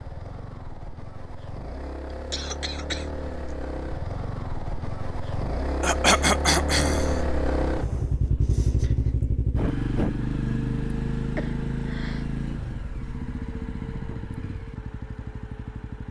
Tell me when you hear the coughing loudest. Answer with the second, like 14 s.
6 s.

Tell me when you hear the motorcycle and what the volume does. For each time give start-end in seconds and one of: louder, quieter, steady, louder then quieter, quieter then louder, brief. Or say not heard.
0.0-16.0 louder then quieter.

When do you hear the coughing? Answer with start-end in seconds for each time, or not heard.
2.1-3.5, 5.8-7.2, 11.3-12.2.